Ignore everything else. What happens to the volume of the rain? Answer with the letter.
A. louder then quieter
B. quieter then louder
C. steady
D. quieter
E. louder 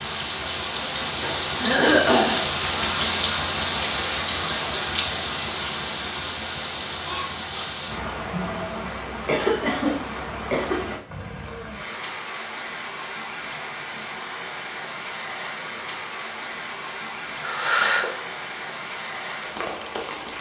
D.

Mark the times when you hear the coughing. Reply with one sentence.
The coughing can be heard from 1.6 to 2.4 s, from 9.2 to 10.9 s and from 17.4 to 18.2 s.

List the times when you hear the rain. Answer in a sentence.
The rain can be heard from 0.0 to 20.3 s.